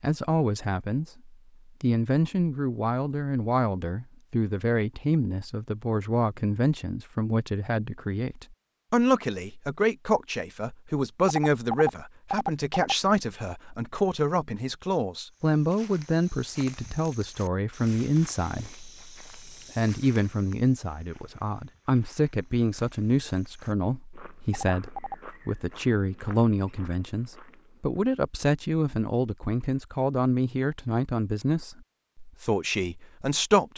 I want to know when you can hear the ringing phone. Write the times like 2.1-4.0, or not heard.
11.2-12.9, 24.5-25.1.